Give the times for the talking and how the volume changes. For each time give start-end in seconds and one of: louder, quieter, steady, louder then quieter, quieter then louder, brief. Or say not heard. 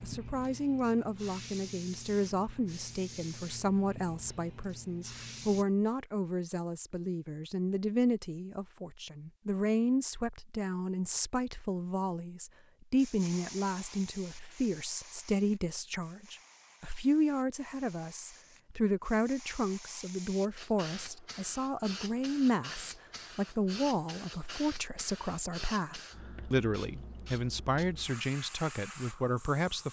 0.0-29.8 steady.